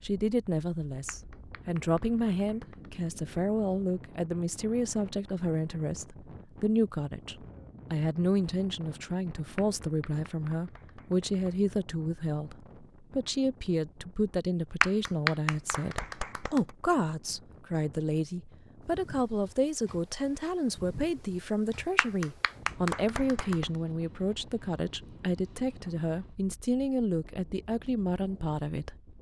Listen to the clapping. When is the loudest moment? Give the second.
15 s.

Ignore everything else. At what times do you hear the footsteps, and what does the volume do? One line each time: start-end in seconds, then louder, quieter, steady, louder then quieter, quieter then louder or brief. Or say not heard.
not heard.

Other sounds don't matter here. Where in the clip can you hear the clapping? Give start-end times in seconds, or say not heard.
1.1-2.9, 9.6-11.6, 14.8-16.7, 21.9-23.6.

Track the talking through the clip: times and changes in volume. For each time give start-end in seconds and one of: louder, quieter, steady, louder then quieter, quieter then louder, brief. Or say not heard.
0.0-28.9 steady.